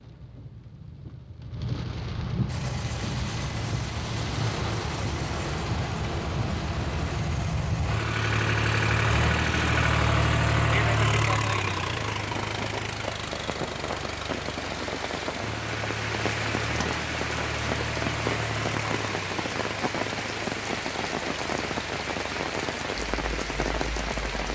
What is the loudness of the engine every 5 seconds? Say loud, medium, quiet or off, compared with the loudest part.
medium, loud, loud, medium, quiet.